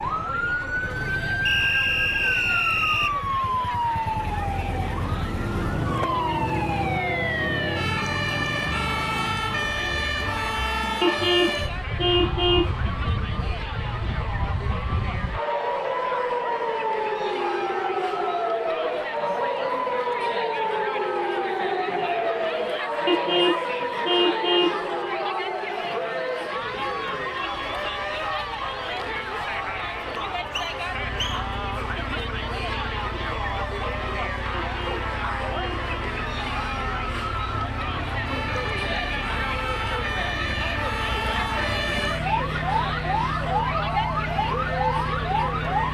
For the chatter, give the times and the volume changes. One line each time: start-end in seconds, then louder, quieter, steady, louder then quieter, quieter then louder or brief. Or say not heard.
0.0-45.9 louder.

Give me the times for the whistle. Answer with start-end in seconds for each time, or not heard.
1.4-3.1, 30.1-31.4.